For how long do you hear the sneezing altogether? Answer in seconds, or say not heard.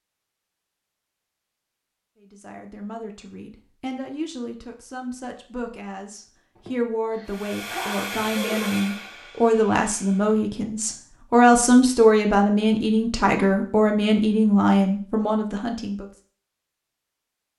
2 s.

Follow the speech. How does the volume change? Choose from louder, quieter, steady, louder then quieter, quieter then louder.
louder.